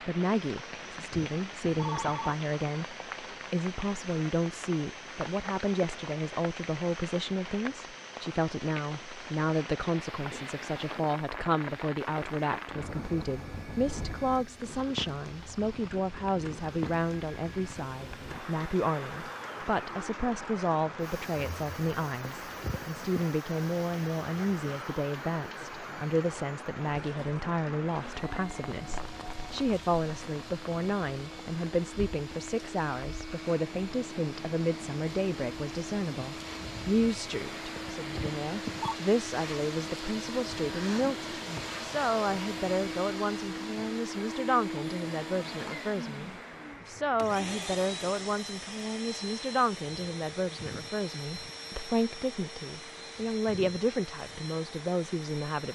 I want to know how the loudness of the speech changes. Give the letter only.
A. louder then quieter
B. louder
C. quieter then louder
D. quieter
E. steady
E.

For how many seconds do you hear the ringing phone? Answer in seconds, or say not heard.
4 s.